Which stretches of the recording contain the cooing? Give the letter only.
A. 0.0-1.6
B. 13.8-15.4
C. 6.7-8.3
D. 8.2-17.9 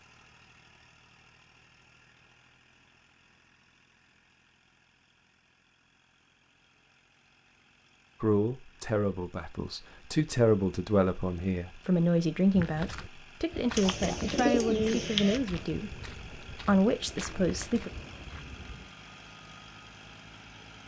B.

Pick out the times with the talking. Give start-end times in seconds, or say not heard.
8.2-17.9.